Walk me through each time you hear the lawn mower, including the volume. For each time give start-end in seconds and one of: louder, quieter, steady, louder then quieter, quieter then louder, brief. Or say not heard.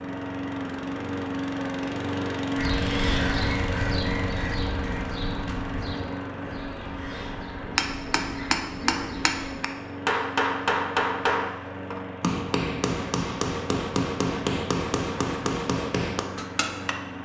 0.0-17.2 quieter.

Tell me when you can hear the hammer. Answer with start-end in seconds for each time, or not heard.
7.7-16.9.